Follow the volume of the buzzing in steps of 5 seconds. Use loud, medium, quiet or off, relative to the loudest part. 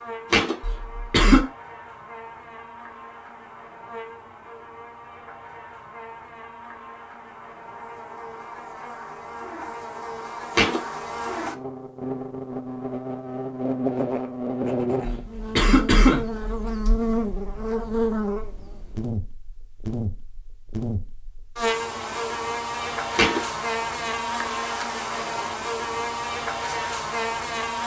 quiet, medium, loud, loud, loud, loud.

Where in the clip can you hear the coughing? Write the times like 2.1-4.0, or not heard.
0.6-1.4, 15.0-16.9.